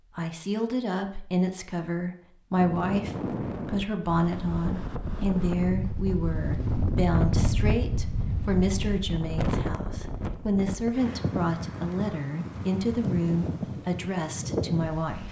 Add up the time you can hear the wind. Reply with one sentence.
You can hear the wind for 13 seconds altogether.